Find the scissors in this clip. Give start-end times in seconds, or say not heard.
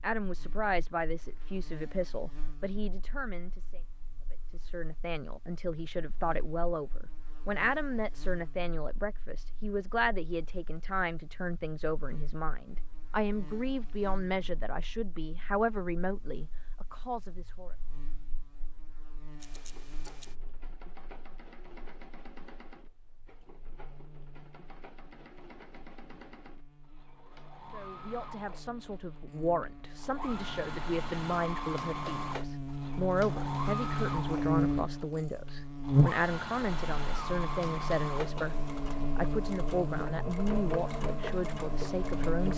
19.4-20.4.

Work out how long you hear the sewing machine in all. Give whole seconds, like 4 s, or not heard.
23 s.